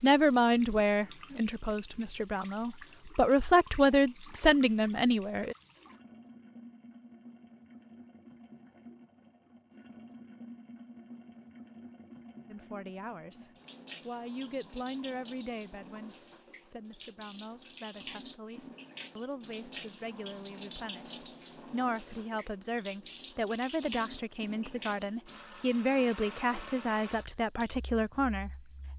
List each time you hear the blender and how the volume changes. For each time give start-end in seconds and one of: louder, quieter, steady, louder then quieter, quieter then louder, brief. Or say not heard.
not heard.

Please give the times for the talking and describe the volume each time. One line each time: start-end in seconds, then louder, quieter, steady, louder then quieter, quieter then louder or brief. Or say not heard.
0.0-5.5 quieter then louder
12.5-28.9 quieter then louder.